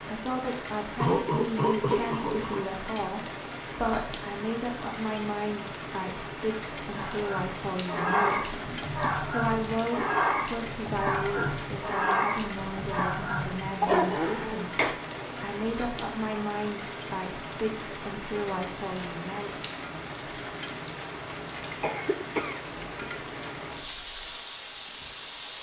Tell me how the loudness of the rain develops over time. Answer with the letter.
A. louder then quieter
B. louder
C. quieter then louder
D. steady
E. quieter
D.